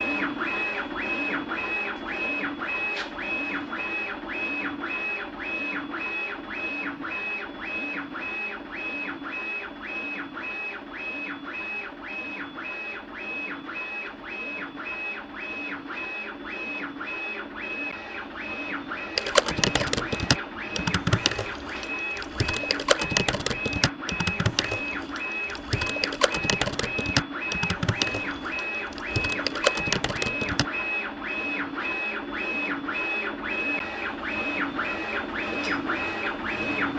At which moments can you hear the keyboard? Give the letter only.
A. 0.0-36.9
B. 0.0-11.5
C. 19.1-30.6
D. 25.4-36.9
C.